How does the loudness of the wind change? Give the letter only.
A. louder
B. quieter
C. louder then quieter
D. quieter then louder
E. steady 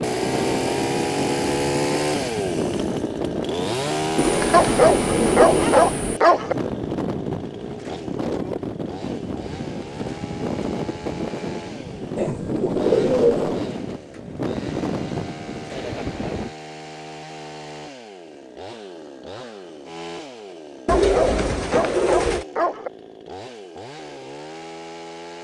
E.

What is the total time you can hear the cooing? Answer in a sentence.
You can hear the cooing for 5 seconds altogether.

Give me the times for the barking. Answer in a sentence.
You can hear the barking from 4.5 to 6.5 s and from 20.9 to 22.9 s.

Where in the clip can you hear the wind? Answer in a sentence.
You can hear the wind from 0.0 to 16.6 s.